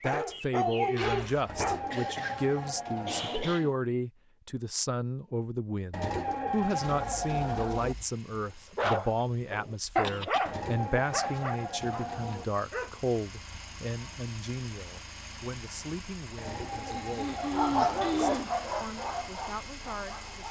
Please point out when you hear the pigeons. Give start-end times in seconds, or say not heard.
1.4-3.5, 5.9-8.0, 10.4-12.4, 16.4-18.1.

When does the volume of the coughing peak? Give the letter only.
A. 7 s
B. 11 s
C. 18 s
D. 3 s
C.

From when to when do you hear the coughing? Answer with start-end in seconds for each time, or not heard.
1.9-3.8, 9.8-10.5, 16.9-18.5.